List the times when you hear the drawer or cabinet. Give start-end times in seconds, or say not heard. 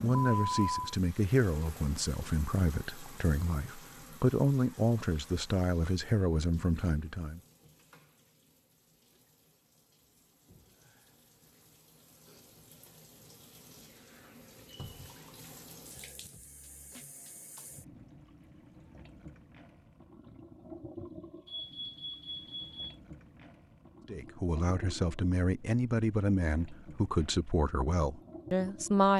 14.8-15.2.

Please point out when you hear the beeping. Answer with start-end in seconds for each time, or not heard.
0.3-0.9, 21.4-22.9.